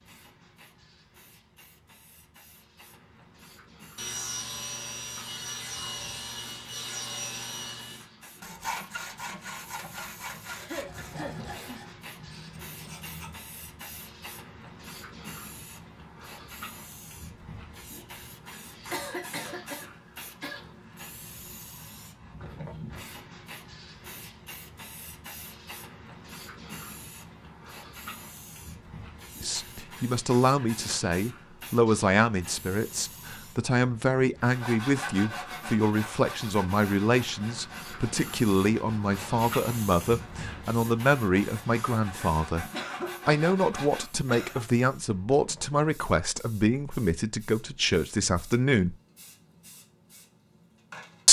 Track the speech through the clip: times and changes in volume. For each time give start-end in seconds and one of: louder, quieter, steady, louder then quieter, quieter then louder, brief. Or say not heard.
29.4-42.6 steady
43.2-49.0 steady.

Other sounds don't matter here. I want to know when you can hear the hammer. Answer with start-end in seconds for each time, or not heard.
not heard.